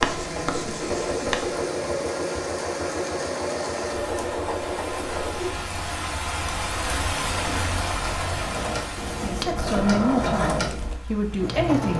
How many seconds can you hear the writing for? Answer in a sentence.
The writing can be heard for 5 seconds in total.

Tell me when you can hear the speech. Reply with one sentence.
The speech can be heard from 9.2 to 11.9 s.